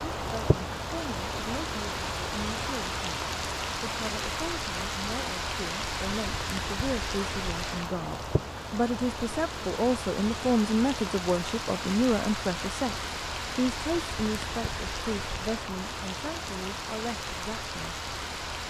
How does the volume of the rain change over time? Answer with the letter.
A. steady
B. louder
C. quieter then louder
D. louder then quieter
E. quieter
A.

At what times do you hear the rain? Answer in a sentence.
The rain can be heard from 0.0 to 18.6 s.